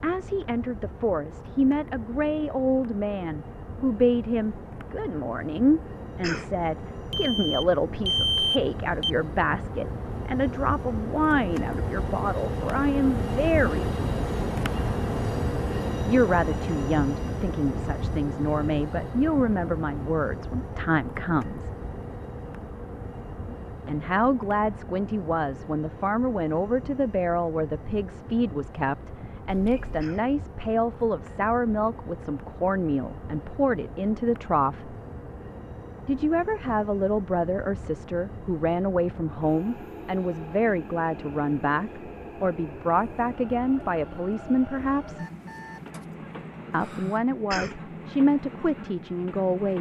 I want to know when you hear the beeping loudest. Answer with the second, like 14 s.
8 s.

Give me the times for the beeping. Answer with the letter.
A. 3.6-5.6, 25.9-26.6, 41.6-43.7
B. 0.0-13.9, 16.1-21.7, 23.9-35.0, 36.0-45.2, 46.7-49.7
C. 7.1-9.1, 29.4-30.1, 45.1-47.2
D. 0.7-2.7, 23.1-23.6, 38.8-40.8
C.